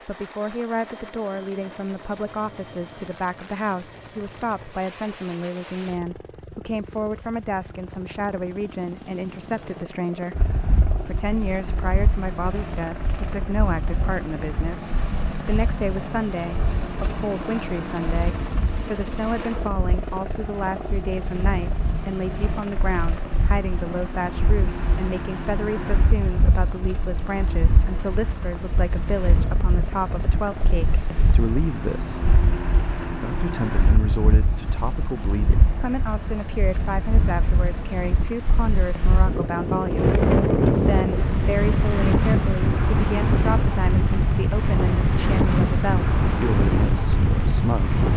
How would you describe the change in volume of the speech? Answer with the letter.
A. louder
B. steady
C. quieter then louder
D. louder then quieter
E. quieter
B.